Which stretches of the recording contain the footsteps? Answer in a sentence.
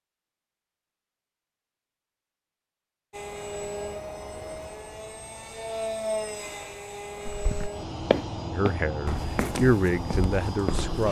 You can hear the footsteps from 7.2 to 11.0 s.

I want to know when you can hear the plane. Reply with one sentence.
The plane can be heard from 3.1 to 11.0 s.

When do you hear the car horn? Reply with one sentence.
You can't hear the car horn here.